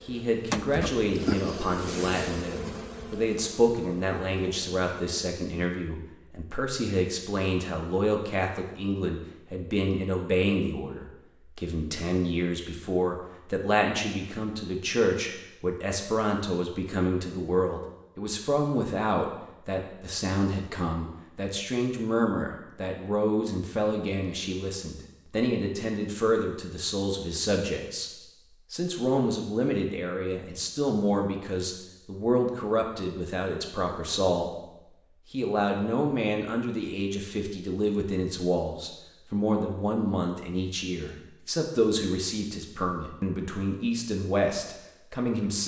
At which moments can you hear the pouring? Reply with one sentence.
You can't hear the pouring here.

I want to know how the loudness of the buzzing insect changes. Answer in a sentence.
The loudness of the buzzing insect goes down.